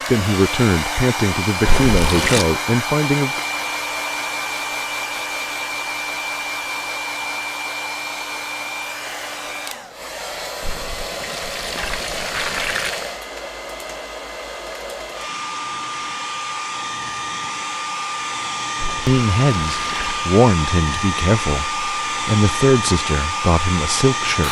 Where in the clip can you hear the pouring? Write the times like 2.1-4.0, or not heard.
1.6-2.5, 10.6-13.1, 18.8-20.3.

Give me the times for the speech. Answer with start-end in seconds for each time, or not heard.
0.1-3.4, 19.1-24.4.